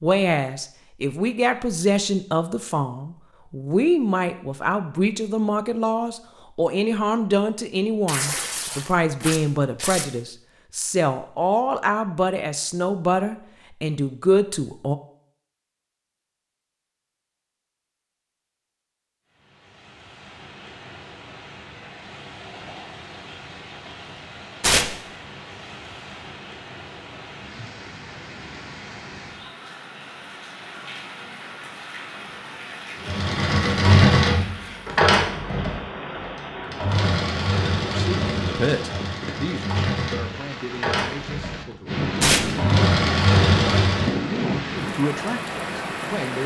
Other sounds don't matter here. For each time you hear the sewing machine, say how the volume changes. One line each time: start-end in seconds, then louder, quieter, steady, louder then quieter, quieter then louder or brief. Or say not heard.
33.0-44.2 quieter then louder.